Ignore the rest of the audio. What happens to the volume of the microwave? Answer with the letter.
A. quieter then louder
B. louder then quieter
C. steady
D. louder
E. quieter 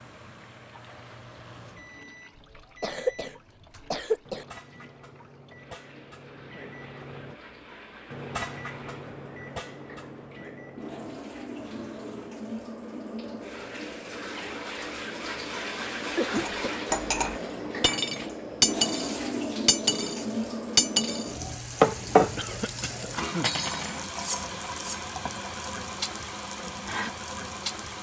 B.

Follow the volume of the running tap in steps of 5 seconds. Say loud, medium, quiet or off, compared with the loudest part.
quiet, quiet, medium, loud, loud, loud.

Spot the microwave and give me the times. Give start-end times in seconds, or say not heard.
0.0-12.3.